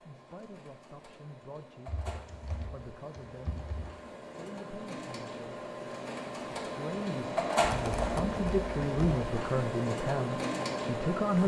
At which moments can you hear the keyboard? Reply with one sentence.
You can hear the keyboard from 1.9 to 4.0 s and from 7.7 to 9.2 s.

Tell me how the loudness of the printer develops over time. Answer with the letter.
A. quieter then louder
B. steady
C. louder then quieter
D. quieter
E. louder
E.